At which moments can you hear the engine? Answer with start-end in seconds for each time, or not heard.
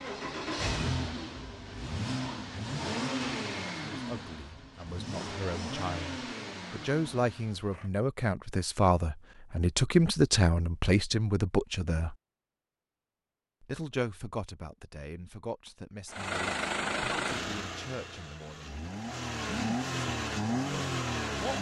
0.0-7.9, 16.1-21.5.